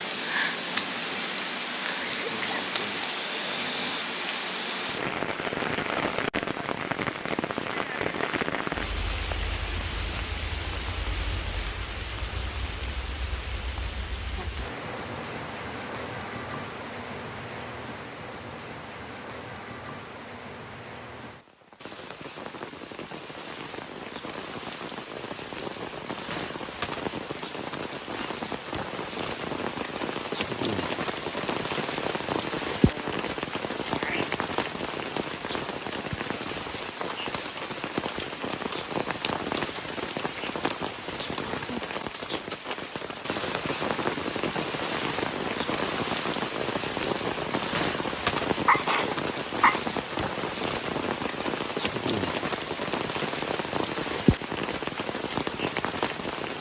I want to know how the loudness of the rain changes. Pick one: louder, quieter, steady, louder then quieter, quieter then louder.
quieter then louder.